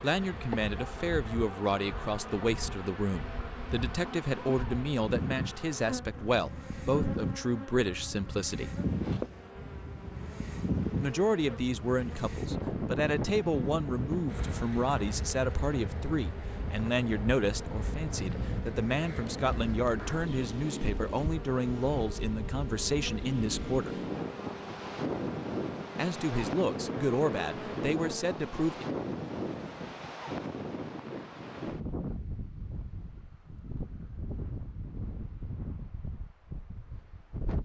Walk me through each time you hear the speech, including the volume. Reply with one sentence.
You can hear the speech from 0.0 to 8.8 s, at a steady volume; from 11.0 to 23.9 s, at a steady volume; and briefly from 25.9 to 28.9 s.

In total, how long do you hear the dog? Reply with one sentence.
The dog can't be heard in this clip.